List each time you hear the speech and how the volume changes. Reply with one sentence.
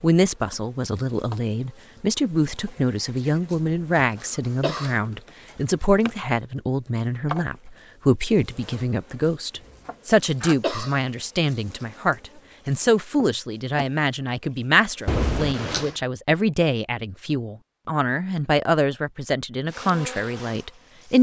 The speech can be heard from 0.0 to 21.1 s, at a steady volume.